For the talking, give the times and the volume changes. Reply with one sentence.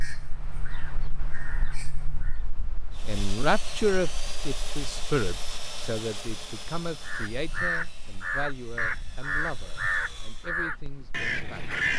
The talking can be heard from 3.0 to 11.7 s, getting quieter.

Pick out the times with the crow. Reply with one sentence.
You can hear the crow from 0.0 to 2.5 s and from 7.0 to 11.9 s.